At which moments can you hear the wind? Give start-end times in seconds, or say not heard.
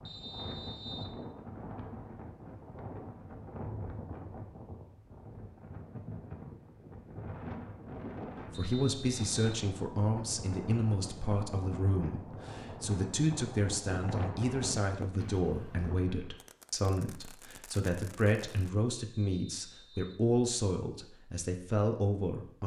0.0-16.3.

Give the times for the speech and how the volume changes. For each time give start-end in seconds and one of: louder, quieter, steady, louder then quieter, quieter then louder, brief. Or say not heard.
8.5-22.6 steady.